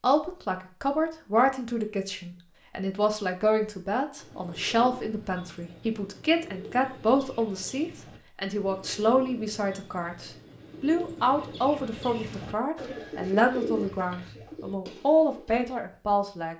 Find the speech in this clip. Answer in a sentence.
The speech can be heard from 0.0 to 16.5 s.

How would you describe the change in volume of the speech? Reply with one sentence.
The loudness of the speech stays about the same.